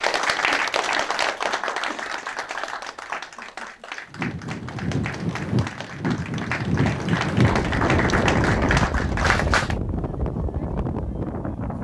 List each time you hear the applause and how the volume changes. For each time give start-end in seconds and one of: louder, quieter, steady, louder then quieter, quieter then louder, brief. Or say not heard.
0.0-9.8 quieter then louder.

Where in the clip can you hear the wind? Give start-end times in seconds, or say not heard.
4.0-11.7.